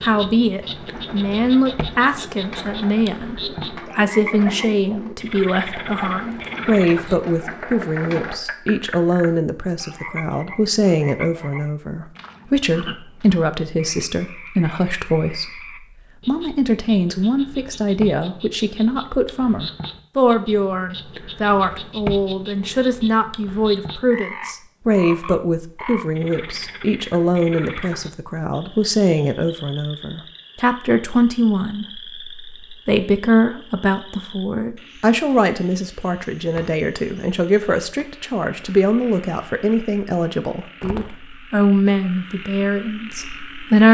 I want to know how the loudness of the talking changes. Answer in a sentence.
The loudness of the talking stays about the same.